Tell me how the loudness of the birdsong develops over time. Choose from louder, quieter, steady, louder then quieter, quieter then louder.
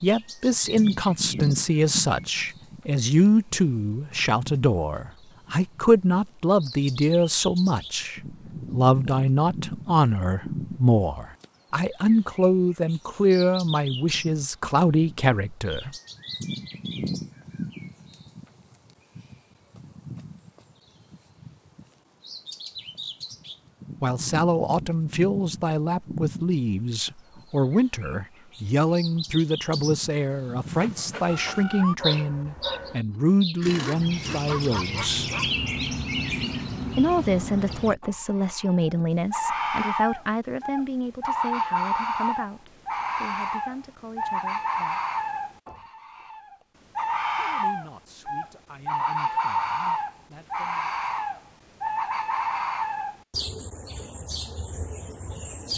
louder.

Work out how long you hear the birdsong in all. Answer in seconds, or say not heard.
56 s.